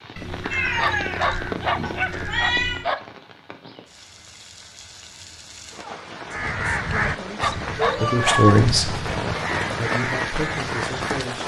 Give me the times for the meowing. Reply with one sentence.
You can hear the meowing from 0.1 to 2.9 s and from 7.8 to 8.5 s.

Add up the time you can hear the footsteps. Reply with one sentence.
You can't hear the footsteps here.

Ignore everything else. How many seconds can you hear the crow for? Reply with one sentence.
The crow can be heard for 7 seconds in total.